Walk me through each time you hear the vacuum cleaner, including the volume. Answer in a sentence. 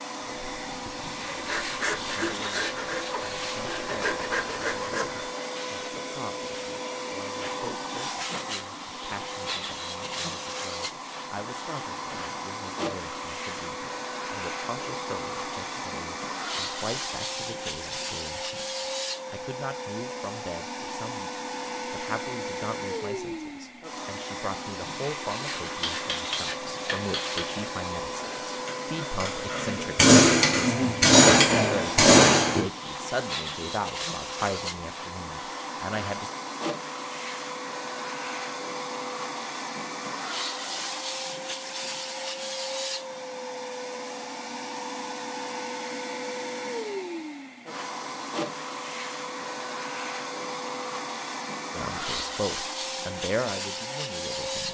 You can hear the vacuum cleaner from 0.0 to 54.6 s, at a steady volume.